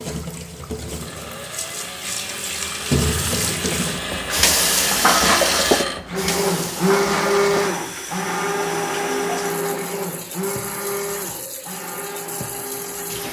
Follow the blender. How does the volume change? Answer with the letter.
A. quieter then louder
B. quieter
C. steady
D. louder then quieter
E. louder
D.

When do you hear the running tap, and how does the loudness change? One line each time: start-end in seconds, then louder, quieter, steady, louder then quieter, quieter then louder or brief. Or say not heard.
0.0-13.2 louder then quieter.